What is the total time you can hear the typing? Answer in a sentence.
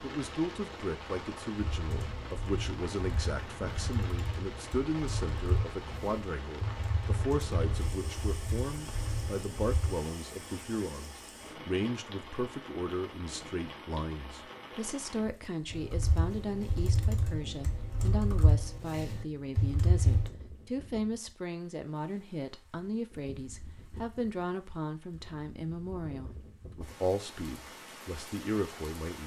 The typing can be heard for 13 seconds in total.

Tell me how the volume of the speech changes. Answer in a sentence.
The loudness of the speech stays about the same.